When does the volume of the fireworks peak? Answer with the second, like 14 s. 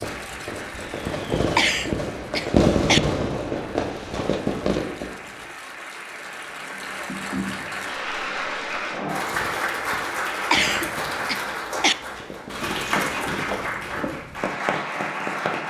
3 s.